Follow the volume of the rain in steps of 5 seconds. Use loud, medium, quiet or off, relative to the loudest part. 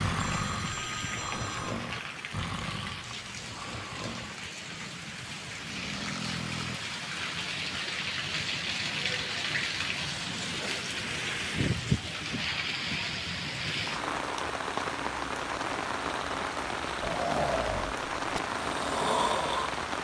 medium, loud, loud, loud.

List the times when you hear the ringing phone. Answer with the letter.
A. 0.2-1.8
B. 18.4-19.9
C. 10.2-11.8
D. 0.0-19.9
A.